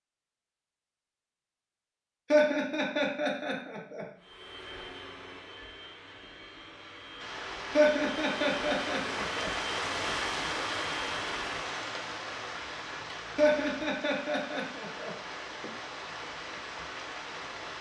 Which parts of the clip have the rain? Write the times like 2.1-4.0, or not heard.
7.2-17.7.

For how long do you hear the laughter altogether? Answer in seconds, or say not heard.
5 s.